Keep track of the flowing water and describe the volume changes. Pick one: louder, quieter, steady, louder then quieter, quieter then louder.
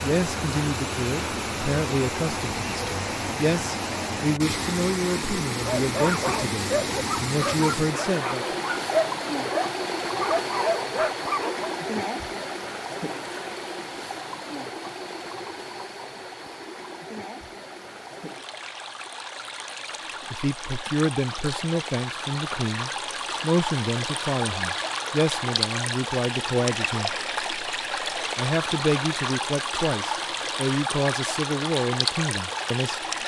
quieter then louder.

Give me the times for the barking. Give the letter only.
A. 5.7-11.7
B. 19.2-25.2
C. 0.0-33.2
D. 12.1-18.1
A.